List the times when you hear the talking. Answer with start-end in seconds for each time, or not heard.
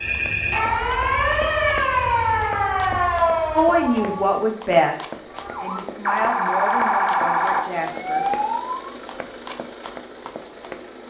3.5-8.2.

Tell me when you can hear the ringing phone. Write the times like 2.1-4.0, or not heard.
not heard.